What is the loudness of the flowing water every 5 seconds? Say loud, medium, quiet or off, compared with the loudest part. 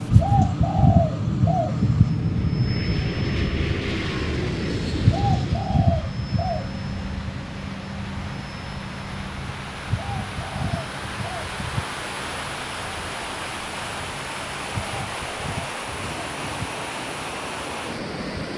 quiet, medium, loud, loud.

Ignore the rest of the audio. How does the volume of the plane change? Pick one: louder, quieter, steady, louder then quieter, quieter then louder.
quieter.